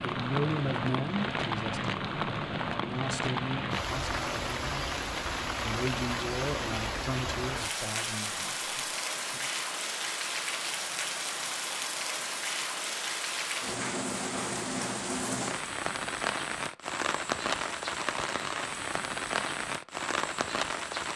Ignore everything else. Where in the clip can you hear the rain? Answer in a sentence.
You can hear the rain from 0.0 to 21.1 s.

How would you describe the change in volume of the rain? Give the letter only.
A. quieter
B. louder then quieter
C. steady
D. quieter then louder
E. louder
C.